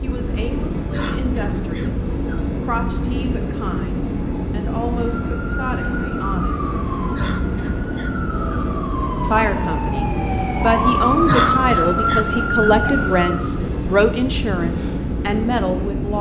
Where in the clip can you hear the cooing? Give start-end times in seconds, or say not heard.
not heard.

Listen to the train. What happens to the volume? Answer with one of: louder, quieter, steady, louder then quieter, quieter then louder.
steady.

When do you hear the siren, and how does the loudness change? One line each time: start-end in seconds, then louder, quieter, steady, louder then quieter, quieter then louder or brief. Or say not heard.
5.2-13.5 louder.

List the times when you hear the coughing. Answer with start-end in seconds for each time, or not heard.
0.9-2.5, 7.2-8.7, 11.2-12.8.